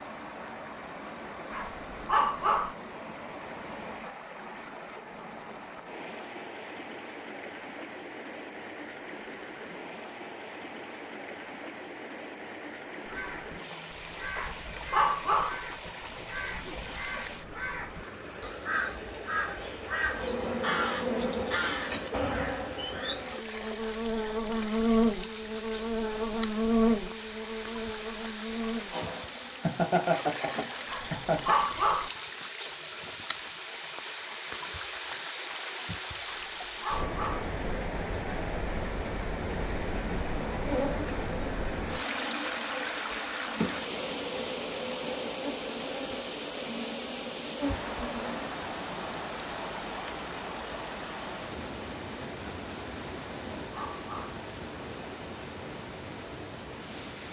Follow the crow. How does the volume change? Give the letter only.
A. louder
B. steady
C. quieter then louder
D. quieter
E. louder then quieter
A.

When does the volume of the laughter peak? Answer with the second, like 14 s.
30 s.